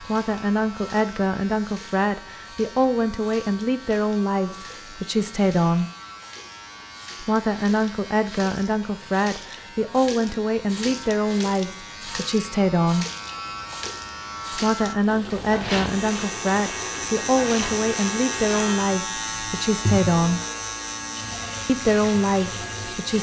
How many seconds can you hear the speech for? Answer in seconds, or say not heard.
19 s.